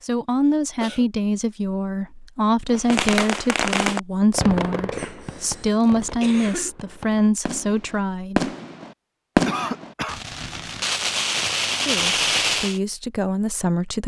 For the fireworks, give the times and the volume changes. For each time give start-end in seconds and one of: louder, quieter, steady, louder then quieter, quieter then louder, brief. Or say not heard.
2.6-12.8 quieter then louder.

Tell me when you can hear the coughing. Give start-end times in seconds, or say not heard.
0.5-1.1, 4.9-6.7, 9.4-10.2.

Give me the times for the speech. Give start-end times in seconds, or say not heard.
0.0-8.5, 11.8-14.0.